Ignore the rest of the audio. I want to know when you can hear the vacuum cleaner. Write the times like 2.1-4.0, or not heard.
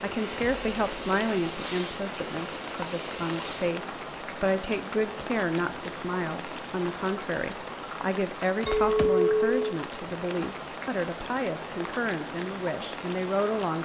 0.0-3.8.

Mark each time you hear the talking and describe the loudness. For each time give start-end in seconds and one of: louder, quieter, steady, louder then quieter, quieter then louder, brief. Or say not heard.
0.0-13.8 steady.